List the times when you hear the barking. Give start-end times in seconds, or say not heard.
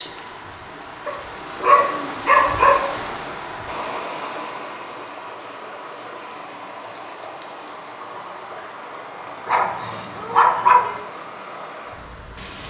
1.1-3.0, 9.4-10.9.